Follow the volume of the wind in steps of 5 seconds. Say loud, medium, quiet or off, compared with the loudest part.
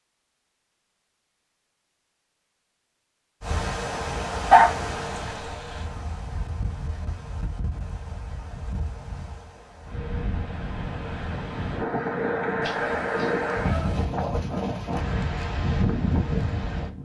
loud, medium, loud, loud.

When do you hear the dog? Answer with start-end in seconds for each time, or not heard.
4.5-5.8, 12.6-14.1.